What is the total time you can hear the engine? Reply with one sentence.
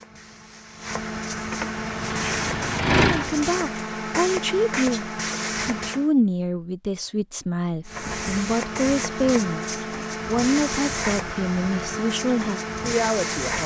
The engine can be heard for 2 seconds in total.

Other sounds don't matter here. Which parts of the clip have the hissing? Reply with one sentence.
You can hear the hissing from 0.0 to 6.1 s and from 7.8 to 13.6 s.